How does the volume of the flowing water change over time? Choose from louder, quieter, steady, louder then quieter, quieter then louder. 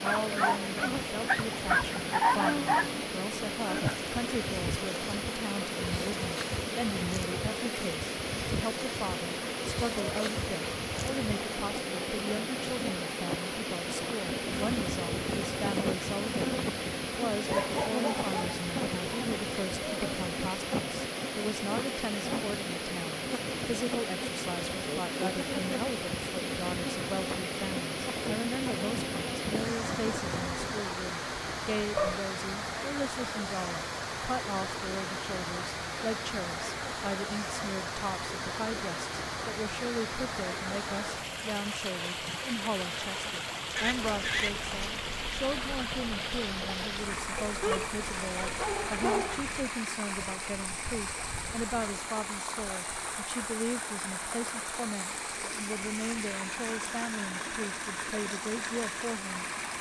steady.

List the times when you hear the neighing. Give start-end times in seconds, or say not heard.
43.8-44.5.